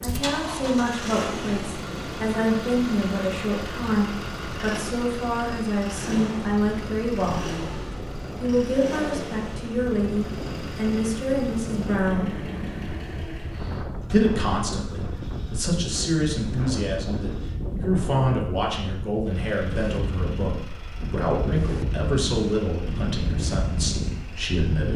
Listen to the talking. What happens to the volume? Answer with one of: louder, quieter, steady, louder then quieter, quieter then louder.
steady.